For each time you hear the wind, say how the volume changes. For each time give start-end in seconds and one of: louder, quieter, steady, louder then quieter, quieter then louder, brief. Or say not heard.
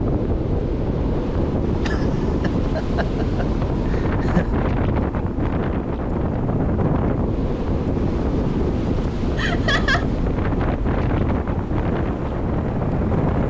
0.0-13.4 steady.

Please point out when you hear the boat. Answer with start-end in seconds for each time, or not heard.
0.1-13.4.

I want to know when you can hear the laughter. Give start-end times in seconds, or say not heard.
1.9-4.5, 9.3-10.1.